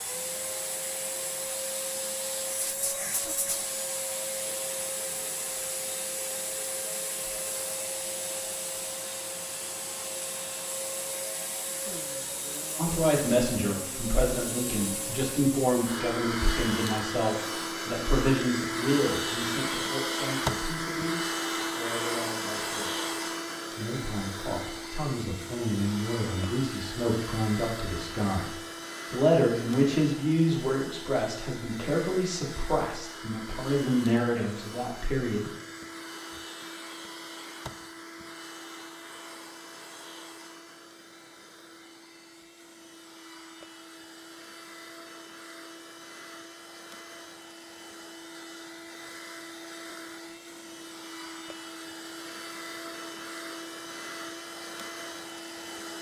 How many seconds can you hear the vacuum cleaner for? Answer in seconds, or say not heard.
56 s.